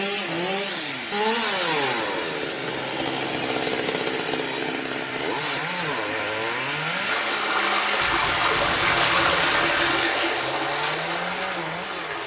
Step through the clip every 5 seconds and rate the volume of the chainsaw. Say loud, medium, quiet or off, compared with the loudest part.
loud, medium, medium.